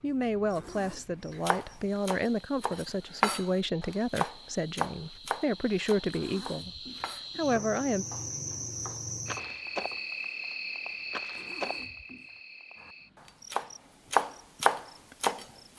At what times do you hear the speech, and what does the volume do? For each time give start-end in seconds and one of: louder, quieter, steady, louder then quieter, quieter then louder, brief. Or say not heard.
0.0-8.1 steady.